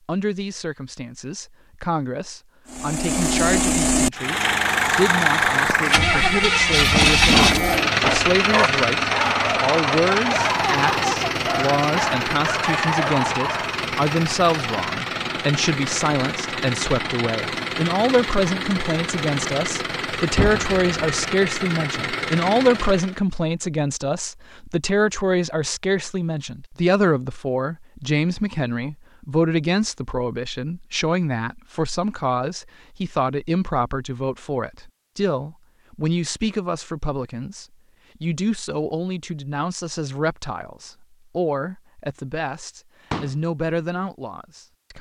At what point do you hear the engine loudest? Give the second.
7 s.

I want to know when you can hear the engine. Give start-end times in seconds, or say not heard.
2.6-23.2.